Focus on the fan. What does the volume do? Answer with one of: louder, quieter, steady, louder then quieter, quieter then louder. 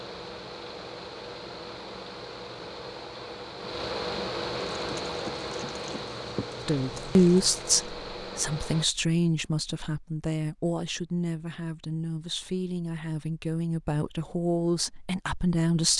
louder then quieter.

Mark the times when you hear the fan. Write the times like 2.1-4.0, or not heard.
0.0-8.8.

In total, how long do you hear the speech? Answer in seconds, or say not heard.
9 s.